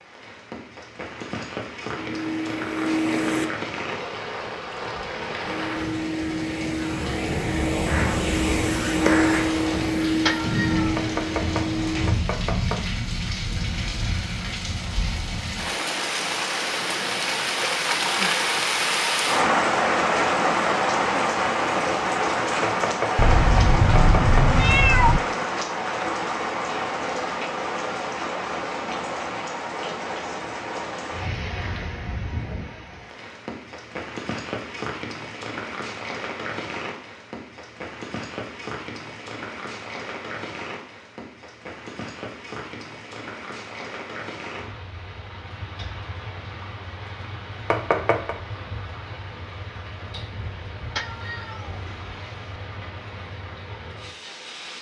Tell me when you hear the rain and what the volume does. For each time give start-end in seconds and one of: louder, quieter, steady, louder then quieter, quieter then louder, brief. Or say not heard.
0.0-54.7 louder then quieter.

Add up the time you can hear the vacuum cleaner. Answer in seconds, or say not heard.
8 s.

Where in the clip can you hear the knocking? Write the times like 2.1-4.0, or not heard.
10.9-12.8, 22.6-24.5, 47.7-48.4.